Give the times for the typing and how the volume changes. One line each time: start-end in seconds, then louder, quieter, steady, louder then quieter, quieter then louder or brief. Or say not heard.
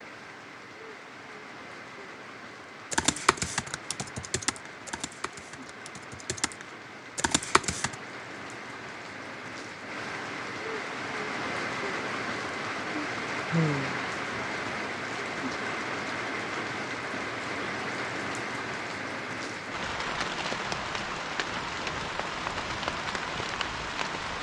2.9-8.0 quieter then louder.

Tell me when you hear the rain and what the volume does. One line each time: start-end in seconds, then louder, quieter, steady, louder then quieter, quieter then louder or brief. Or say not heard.
0.0-24.3 louder.